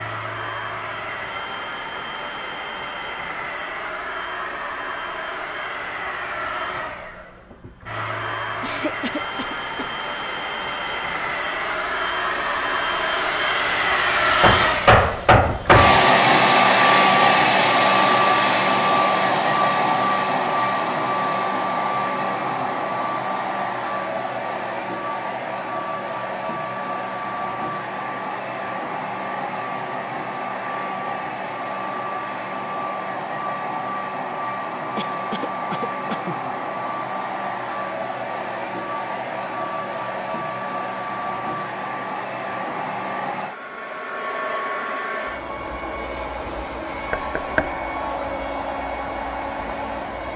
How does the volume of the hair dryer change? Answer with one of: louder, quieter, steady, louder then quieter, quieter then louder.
louder then quieter.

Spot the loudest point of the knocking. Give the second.
15 s.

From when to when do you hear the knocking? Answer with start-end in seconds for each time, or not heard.
14.4-16.1, 47.1-47.7.